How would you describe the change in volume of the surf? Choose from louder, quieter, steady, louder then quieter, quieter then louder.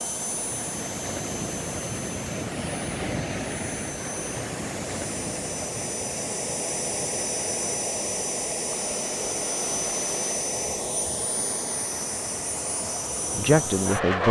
quieter.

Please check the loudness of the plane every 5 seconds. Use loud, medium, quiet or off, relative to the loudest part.
medium, loud, loud.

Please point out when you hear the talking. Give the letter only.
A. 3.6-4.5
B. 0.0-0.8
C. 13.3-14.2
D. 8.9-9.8
C.